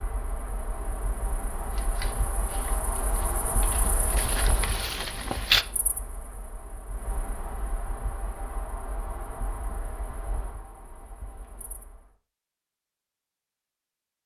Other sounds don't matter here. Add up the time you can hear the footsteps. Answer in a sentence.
You can hear the footsteps for 4 seconds altogether.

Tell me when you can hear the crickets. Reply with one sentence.
The crickets can be heard from 0.0 to 12.0 s.